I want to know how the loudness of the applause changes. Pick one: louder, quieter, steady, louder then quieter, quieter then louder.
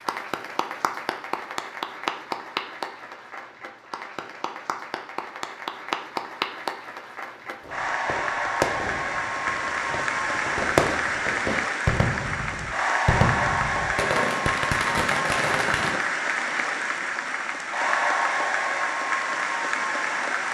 louder.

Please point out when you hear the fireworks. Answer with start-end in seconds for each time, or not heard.
7.6-16.1.